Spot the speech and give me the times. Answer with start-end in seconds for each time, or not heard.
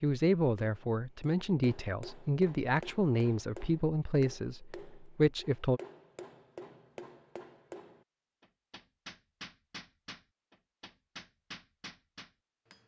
0.0-5.8.